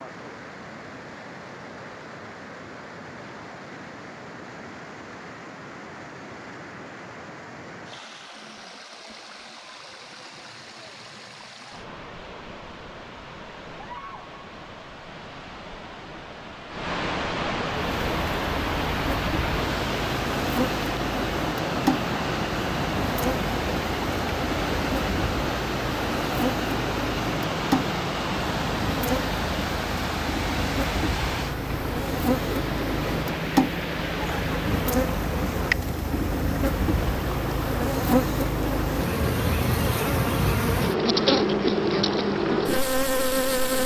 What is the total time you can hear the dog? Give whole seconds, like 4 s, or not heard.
not heard.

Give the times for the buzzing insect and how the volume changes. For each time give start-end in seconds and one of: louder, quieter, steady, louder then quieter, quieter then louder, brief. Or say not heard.
17.8-43.8 louder.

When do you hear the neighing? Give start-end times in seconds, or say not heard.
not heard.